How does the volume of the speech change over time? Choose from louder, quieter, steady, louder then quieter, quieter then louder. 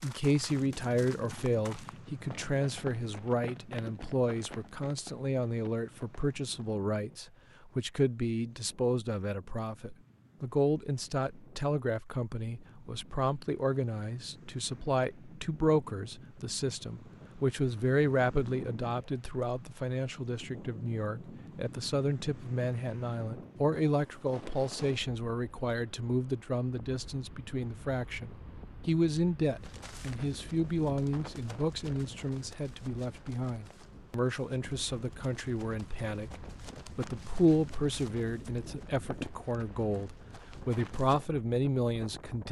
steady.